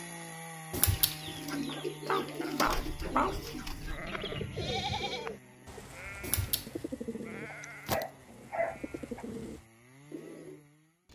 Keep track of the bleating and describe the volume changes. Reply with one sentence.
The volume of the bleating goes up, then down.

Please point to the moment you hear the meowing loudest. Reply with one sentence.
The volume of the meowing peaks at 1 second.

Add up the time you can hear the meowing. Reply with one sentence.
You can hear the meowing for 2 seconds altogether.